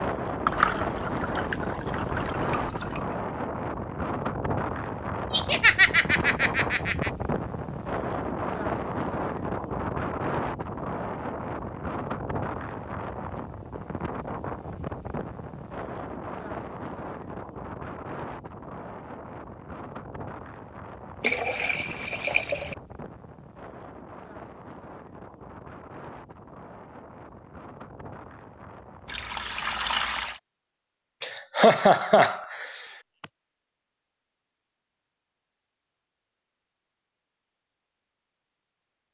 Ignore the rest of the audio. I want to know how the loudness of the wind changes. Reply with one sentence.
The volume of the wind goes down.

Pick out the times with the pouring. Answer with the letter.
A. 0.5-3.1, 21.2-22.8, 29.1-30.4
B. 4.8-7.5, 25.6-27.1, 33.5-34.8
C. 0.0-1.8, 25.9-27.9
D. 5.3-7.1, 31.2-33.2
A.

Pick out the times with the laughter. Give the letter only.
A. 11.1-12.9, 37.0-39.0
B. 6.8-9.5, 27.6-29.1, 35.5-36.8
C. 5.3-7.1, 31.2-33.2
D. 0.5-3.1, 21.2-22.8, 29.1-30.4
C.